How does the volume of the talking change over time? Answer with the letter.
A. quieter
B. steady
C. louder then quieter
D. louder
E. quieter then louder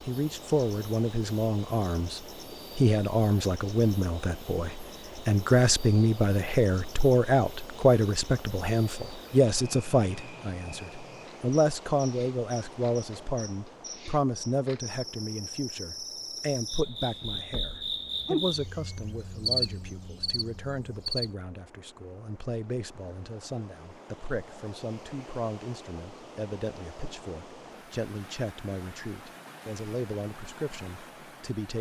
A.